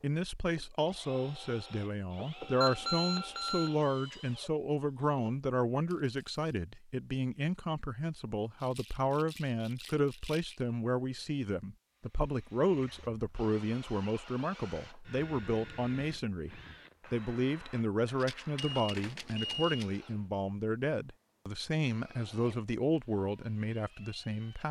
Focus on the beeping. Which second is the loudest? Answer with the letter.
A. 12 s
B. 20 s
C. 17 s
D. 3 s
D.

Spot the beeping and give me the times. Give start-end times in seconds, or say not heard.
2.6-3.8, 18.6-19.9.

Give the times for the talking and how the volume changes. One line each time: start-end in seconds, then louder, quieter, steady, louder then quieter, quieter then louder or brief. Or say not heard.
0.0-24.6 steady.